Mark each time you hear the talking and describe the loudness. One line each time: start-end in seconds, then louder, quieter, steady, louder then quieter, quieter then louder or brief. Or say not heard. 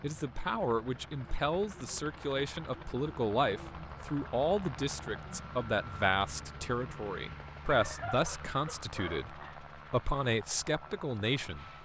0.0-11.8 steady.